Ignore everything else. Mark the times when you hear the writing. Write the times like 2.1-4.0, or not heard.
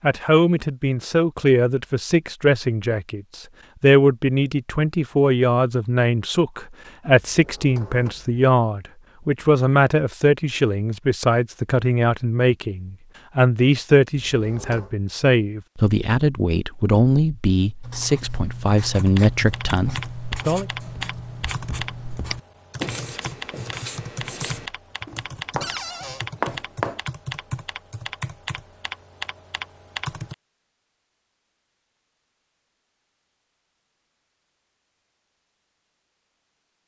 17.8-27.0.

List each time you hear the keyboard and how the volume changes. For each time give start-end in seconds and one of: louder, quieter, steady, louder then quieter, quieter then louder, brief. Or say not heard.
18.9-30.4 steady.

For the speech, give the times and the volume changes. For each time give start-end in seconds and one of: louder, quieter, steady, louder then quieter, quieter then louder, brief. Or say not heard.
0.0-20.6 steady.